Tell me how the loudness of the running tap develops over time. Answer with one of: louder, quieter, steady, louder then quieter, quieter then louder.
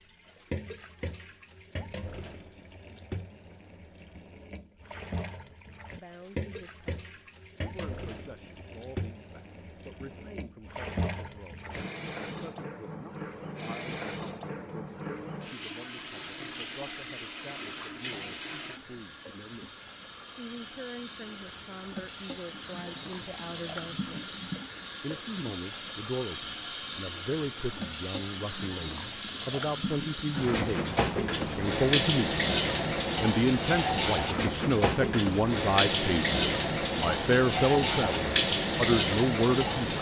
louder.